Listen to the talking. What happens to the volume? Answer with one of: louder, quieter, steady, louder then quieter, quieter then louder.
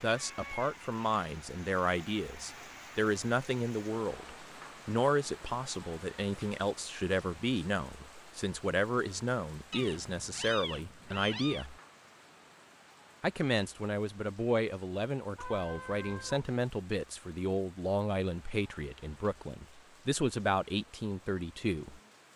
steady.